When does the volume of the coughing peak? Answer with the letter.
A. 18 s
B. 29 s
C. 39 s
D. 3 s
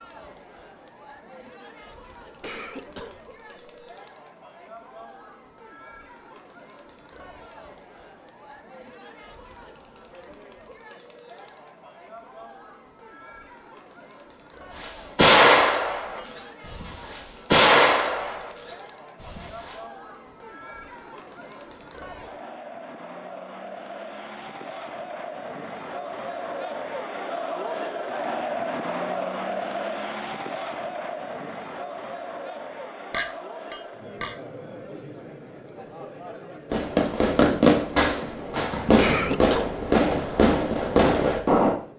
C.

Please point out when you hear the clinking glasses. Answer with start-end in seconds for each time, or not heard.
15.6-16.2, 33.1-34.4.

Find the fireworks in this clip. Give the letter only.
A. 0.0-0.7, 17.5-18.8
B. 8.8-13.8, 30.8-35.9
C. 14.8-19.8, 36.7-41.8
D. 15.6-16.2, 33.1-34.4
C.